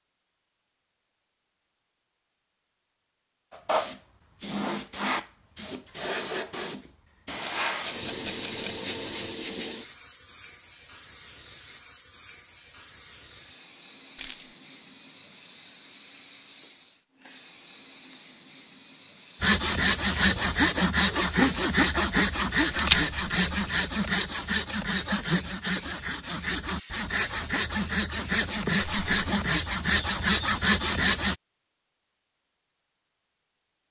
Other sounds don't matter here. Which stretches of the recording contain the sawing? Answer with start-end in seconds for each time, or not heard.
19.4-31.4.